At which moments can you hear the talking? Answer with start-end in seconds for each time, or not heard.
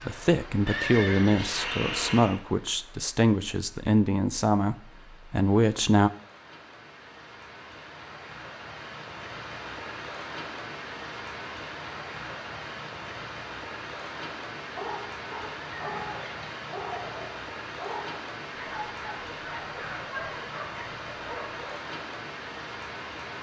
0.1-6.1.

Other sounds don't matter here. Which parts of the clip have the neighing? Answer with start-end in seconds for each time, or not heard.
0.7-2.4, 15.8-16.5.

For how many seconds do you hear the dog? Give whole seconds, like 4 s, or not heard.
7 s.